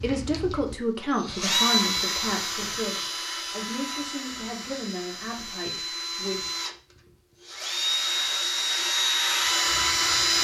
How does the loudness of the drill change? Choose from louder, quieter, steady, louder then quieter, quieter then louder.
quieter then louder.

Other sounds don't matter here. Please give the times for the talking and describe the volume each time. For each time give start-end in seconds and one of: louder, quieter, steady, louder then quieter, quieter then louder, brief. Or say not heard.
0.0-6.5 quieter.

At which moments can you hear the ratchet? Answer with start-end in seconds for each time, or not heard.
not heard.